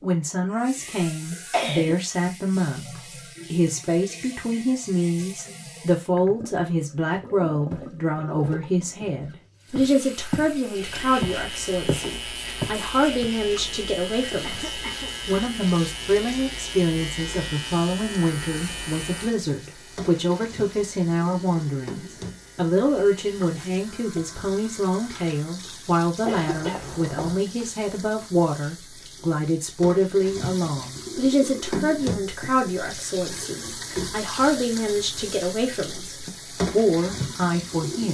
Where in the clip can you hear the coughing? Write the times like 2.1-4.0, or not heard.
0.8-1.9, 14.4-15.2, 26.2-27.4.